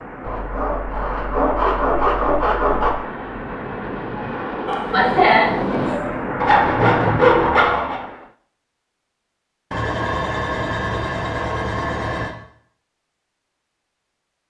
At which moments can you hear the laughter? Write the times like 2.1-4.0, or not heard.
4.7-6.1.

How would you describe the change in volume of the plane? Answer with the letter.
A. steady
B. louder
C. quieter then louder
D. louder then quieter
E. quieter
B.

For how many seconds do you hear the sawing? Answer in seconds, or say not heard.
7 s.